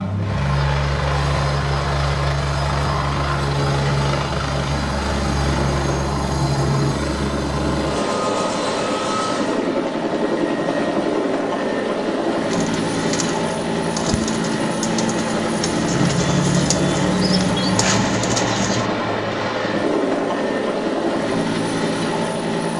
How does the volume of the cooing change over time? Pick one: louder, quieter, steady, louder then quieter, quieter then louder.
louder.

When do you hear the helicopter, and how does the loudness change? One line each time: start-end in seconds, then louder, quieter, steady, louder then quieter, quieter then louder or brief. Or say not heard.
0.0-22.7 steady.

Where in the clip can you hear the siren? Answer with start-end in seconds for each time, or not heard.
not heard.